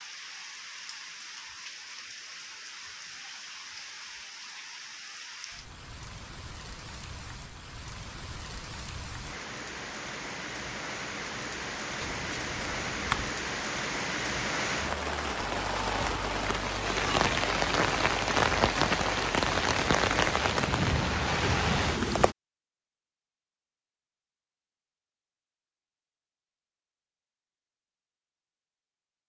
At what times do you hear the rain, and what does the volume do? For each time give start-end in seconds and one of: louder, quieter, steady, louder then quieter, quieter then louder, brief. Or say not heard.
0.0-22.4 louder.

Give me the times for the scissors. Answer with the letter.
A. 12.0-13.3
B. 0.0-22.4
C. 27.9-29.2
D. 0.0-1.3
A.